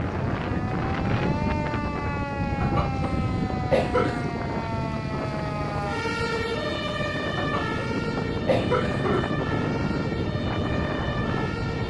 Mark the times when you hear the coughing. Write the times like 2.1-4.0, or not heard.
2.6-4.3, 7.3-9.3.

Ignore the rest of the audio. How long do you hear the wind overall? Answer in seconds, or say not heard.
12 s.